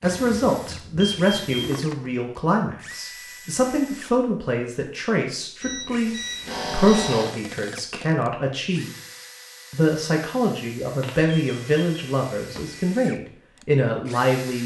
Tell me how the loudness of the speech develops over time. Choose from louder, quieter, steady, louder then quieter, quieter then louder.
steady.